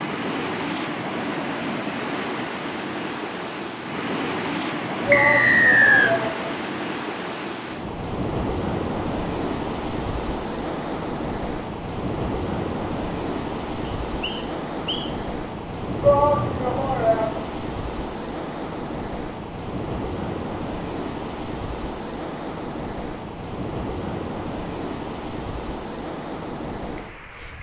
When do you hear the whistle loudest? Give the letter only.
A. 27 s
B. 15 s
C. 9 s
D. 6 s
D.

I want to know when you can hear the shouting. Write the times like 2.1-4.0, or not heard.
5.0-6.5, 16.0-17.4.